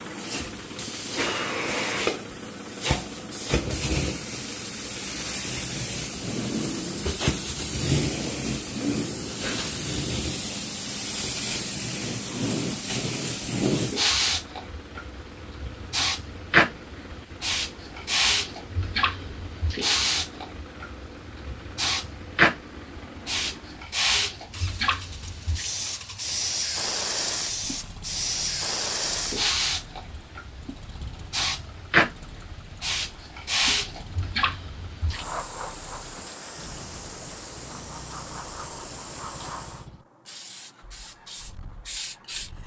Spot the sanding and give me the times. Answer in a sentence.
The sanding can't be heard in this clip.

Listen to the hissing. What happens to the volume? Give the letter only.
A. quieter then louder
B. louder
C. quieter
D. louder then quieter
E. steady
C.